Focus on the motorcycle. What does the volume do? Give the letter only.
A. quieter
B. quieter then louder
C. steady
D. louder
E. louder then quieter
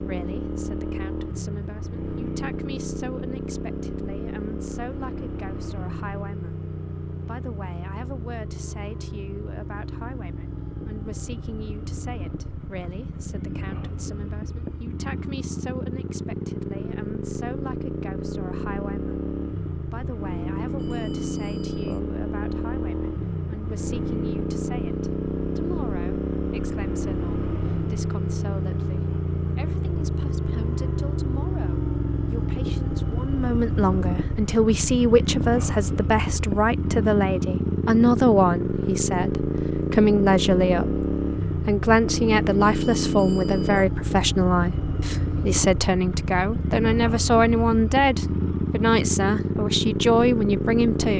D.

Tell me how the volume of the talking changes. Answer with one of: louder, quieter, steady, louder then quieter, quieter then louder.
louder.